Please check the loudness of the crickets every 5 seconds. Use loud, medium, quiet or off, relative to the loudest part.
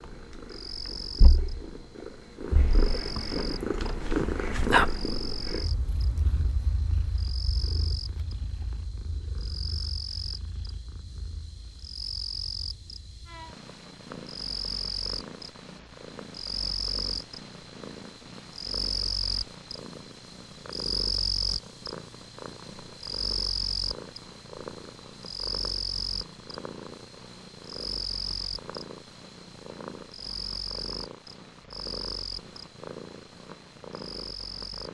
medium, medium, medium, loud, loud, loud, medium.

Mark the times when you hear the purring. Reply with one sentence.
You can hear the purring from 0.0 to 34.8 s.